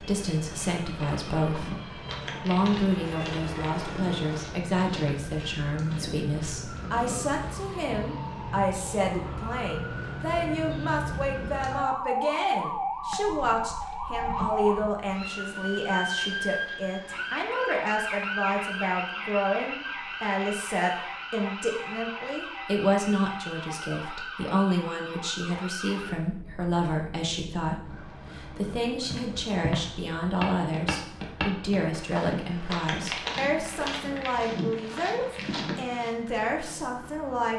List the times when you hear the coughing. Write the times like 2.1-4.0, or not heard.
not heard.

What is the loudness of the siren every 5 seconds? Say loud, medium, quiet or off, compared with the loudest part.
medium, medium, loud, loud, medium, medium, quiet, quiet.